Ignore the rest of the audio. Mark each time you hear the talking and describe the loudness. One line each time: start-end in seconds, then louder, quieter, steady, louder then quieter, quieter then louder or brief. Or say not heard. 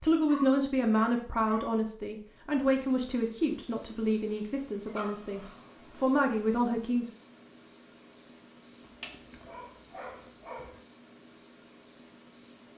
0.0-7.1 quieter then louder.